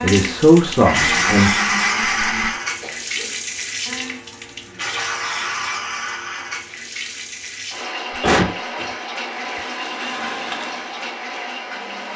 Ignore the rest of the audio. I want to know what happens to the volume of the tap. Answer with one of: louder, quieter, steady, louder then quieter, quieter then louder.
quieter.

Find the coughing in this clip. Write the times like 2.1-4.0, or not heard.
2.8-3.4, 8.2-8.8.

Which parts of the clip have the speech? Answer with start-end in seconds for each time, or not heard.
0.0-1.6.